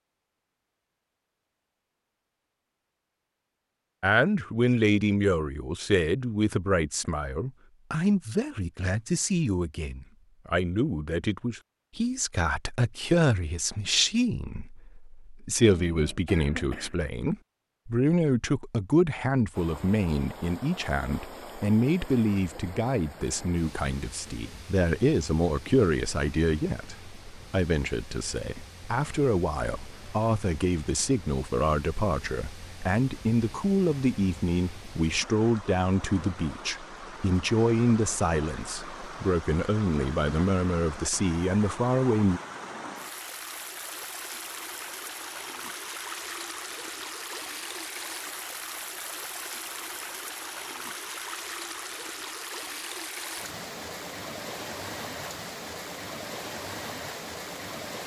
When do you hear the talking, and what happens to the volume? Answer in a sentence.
The talking can be heard from 4.0 to 42.4 s, at a steady volume.